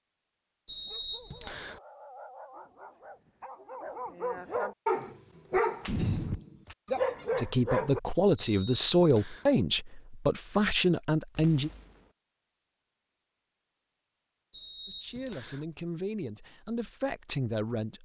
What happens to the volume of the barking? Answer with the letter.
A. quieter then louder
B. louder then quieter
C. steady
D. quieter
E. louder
E.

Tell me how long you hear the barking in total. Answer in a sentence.
The barking can be heard for 7 seconds in total.